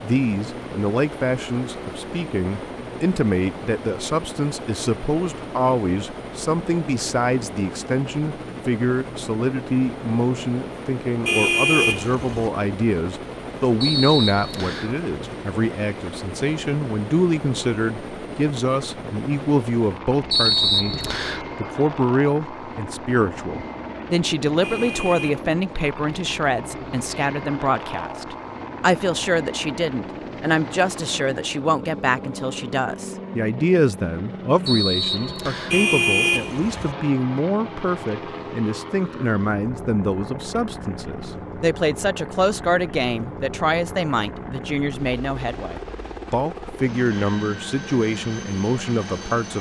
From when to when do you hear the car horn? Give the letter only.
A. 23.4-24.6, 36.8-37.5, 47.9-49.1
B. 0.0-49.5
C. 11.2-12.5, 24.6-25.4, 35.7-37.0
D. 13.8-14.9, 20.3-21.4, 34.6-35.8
C.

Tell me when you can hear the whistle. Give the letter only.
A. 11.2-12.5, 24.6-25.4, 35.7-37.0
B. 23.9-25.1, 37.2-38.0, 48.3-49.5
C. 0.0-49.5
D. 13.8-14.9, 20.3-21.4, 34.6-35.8
D.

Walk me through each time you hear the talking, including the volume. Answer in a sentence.
The talking can be heard from 0.0 to 49.5 s, at a steady volume.